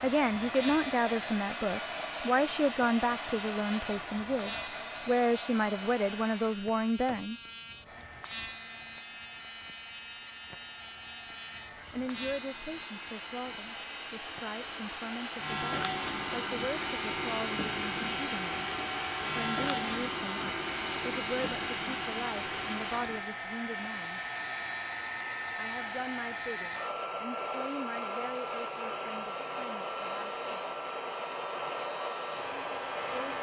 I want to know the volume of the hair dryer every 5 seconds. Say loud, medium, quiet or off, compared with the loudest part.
loud, medium, medium, loud, loud, loud, loud.